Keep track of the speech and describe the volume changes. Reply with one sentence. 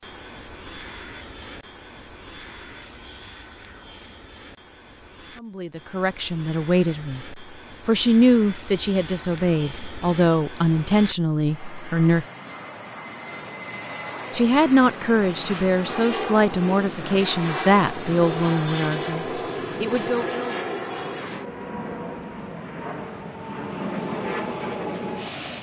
The loudness of the speech stays about the same.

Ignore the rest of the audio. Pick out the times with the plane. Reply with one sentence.
The plane can be heard from 0.0 to 25.5 s.